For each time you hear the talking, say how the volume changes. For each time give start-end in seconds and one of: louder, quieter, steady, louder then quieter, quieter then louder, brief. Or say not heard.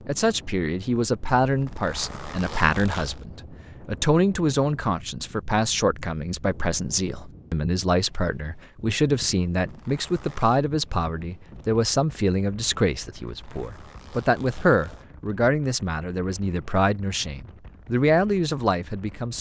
0.1-19.3 steady.